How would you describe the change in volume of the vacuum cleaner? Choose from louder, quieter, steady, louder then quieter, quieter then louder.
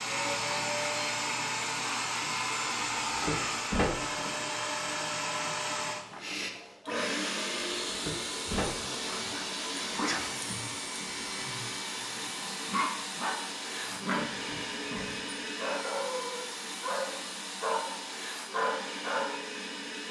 quieter.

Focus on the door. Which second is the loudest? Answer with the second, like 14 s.
4 s.